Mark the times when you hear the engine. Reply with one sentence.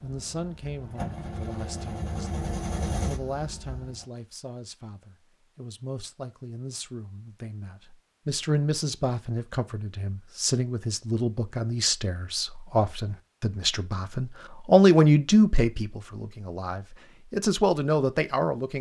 You can hear the engine from 0.0 to 4.0 s.